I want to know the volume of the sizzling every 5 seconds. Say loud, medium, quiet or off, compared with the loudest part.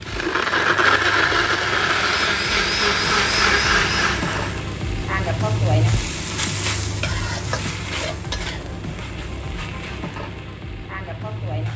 medium, loud, medium.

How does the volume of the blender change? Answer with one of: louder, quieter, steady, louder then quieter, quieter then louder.
steady.